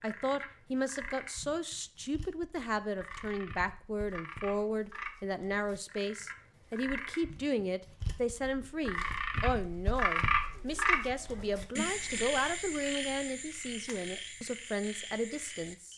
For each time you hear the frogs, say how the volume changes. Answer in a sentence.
The frogs can be heard from 0.0 to 15.9 s, getting louder then quieter.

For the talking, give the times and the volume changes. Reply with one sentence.
The talking can be heard from 0.0 to 15.9 s, at a steady volume.